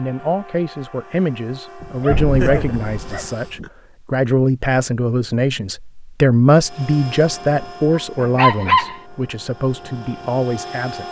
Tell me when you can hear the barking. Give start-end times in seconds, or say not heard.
1.8-3.7, 8.0-9.0.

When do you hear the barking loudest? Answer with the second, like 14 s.
9 s.